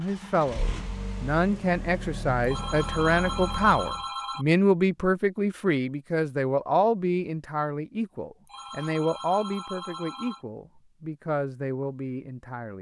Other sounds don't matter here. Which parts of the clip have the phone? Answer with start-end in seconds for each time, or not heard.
2.4-4.5, 8.4-10.4.